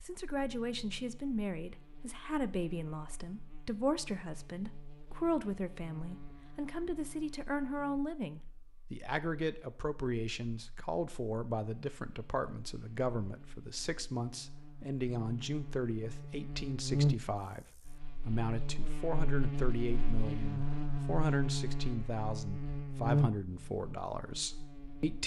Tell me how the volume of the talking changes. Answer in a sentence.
The loudness of the talking stays about the same.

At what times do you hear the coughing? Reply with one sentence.
The coughing can't be heard in this clip.